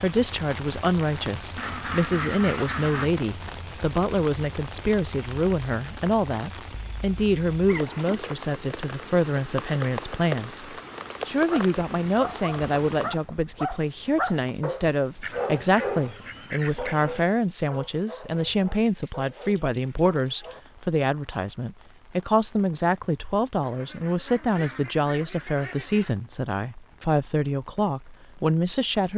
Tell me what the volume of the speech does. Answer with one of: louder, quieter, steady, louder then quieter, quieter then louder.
steady.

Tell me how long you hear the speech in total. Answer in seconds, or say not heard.
29 s.